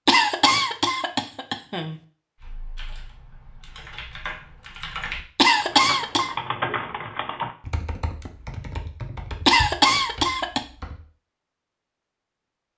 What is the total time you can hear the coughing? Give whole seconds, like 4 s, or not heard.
4 s.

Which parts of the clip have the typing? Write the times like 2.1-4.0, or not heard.
2.4-11.0.